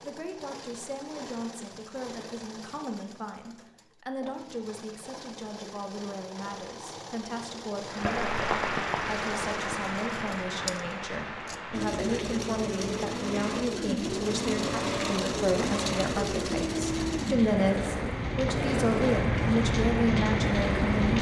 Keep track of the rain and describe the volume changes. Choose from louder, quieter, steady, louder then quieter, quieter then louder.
quieter then louder.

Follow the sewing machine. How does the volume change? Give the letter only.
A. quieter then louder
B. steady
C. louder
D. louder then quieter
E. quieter
C.